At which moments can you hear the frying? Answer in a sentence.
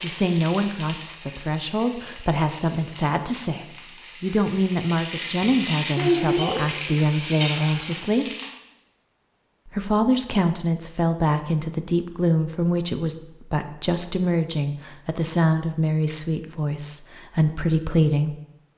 You can hear the frying from 0.0 to 8.5 s.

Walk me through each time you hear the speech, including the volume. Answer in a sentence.
You can hear the speech from 0.0 to 8.2 s, at a steady volume; and from 9.7 to 18.4 s, at a steady volume.